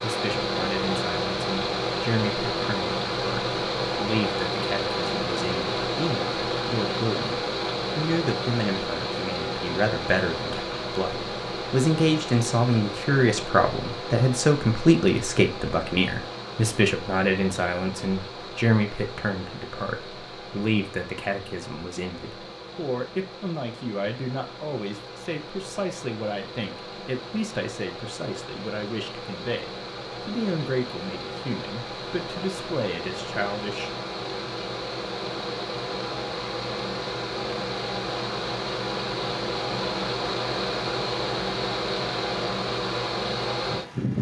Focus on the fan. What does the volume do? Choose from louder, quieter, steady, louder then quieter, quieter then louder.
quieter then louder.